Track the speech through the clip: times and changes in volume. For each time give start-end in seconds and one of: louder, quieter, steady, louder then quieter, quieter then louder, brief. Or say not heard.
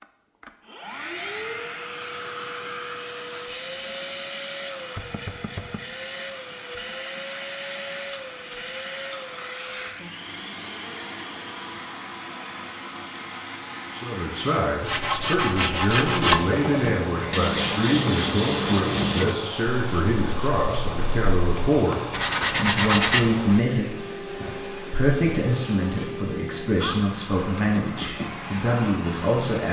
13.9-29.6 steady.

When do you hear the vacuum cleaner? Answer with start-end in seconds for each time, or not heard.
0.0-29.6.